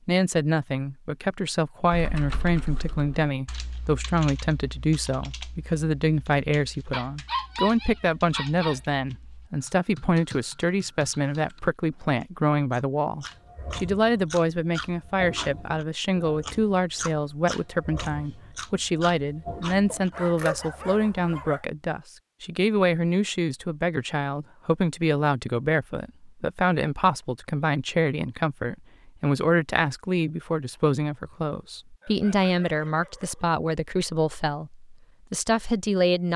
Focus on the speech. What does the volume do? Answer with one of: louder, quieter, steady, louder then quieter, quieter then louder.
steady.